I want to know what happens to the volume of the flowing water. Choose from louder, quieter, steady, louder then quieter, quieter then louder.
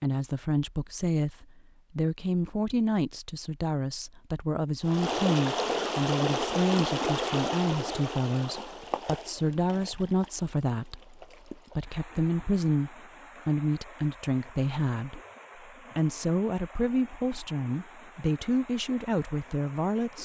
quieter.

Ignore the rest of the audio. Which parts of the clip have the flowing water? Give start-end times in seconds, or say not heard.
4.8-20.2.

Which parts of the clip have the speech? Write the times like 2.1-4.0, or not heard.
0.0-15.2, 15.9-20.2.